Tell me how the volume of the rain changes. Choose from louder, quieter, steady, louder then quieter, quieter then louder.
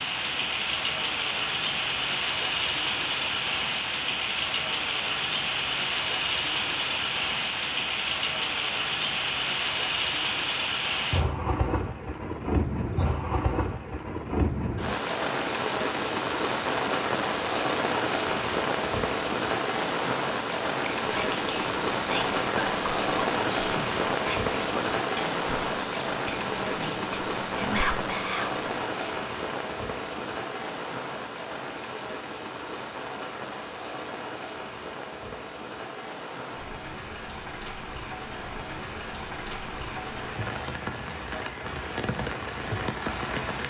quieter.